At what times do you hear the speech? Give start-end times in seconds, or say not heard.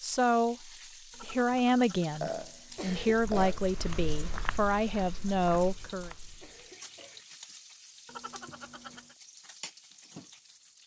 0.0-6.1.